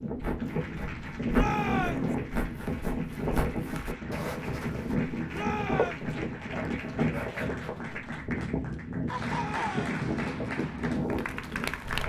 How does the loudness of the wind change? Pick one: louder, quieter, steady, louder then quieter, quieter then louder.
steady.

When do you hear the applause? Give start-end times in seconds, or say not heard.
0.0-12.0.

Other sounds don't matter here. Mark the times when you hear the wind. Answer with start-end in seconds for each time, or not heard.
0.0-12.0.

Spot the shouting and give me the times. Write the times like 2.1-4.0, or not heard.
1.3-2.1, 5.3-6.2, 9.2-9.9.